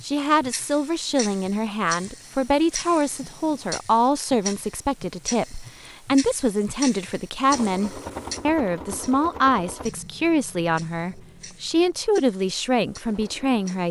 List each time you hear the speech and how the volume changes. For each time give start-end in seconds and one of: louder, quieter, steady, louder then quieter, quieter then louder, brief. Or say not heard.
0.0-13.8 steady.